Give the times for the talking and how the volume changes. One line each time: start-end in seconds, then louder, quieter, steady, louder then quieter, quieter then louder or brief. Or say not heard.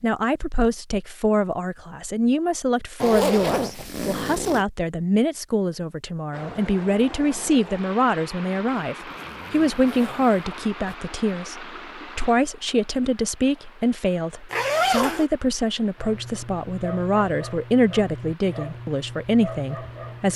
0.0-20.3 steady.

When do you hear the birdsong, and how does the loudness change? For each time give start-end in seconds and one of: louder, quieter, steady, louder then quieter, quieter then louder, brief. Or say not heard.
not heard.